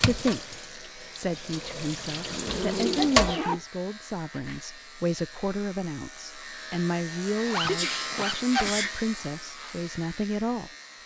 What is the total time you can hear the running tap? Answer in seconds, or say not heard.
3 s.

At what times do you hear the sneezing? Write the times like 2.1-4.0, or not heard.
3.0-3.6, 7.7-8.9.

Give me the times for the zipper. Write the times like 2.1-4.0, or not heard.
2.1-3.6, 7.5-8.3.